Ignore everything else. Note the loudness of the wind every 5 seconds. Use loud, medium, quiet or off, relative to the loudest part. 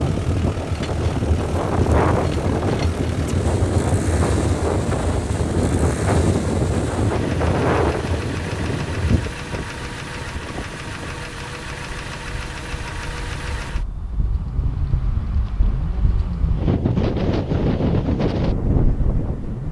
loud, loud, quiet, loud.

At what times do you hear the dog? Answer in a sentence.
The dog can't be heard in this clip.